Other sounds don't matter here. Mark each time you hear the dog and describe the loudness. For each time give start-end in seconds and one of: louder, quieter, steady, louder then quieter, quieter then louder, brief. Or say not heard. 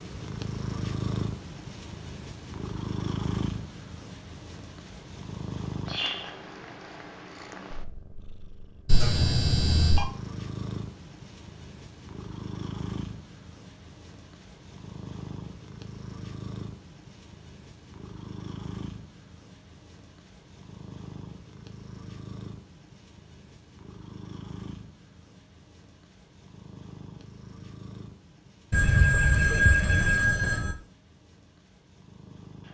not heard.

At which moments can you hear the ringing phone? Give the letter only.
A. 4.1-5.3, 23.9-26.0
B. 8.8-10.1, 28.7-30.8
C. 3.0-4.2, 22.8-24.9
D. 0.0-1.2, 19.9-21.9
B.